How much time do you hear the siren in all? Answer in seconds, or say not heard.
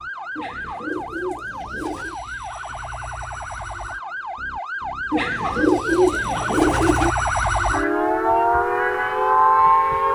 10 s.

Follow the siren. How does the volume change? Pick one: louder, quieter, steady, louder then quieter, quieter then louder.
louder.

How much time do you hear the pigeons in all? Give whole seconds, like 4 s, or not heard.
4 s.